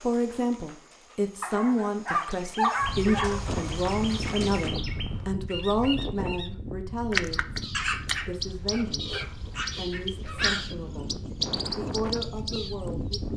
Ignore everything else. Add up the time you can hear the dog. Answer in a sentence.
You can hear the dog for 5 seconds altogether.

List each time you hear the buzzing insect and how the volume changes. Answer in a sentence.
You can't hear the buzzing insect here.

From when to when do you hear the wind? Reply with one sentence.
You can hear the wind from 2.8 to 13.3 s.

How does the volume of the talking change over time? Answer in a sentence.
The loudness of the talking goes down.